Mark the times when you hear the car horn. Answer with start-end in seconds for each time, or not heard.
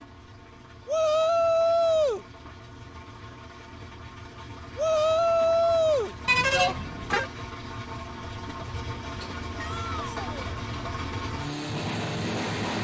6.2-7.3.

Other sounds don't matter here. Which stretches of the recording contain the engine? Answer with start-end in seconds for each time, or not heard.
0.0-12.7.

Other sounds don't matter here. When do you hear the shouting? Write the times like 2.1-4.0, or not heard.
0.8-2.2, 4.8-6.8, 9.6-10.3.